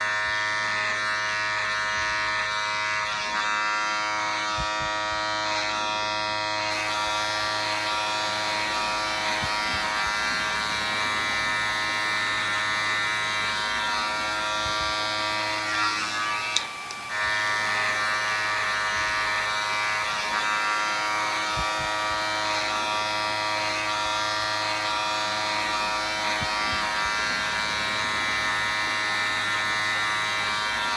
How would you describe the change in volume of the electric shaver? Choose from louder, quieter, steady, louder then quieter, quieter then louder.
steady.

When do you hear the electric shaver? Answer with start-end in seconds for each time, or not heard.
0.0-30.9.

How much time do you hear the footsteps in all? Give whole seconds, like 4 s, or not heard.
not heard.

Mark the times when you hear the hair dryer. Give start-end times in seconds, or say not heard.
6.9-30.9.